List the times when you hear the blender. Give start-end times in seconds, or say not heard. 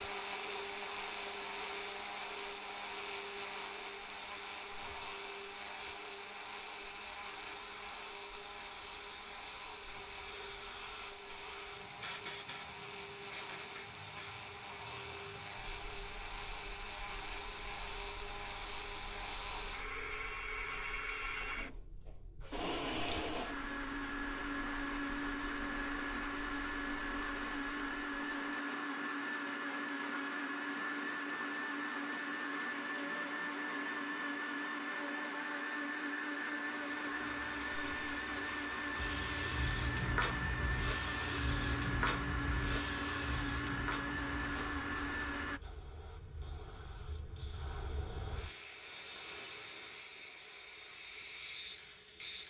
0.0-45.6.